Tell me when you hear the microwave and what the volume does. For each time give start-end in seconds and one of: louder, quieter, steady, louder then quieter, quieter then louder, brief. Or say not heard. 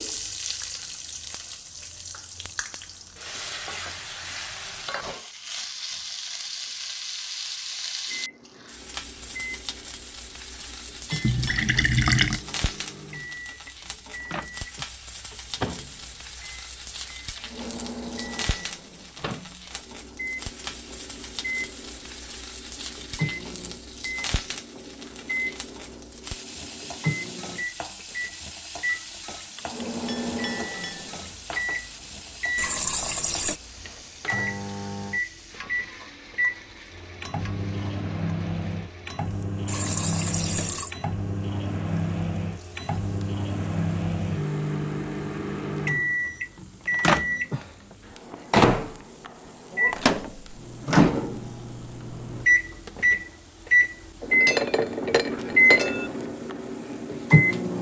8.1-57.7 louder.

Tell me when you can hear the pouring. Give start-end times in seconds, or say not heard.
11.2-12.4, 32.5-33.6, 39.6-41.0.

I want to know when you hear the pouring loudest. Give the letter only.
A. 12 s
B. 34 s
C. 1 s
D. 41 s
A.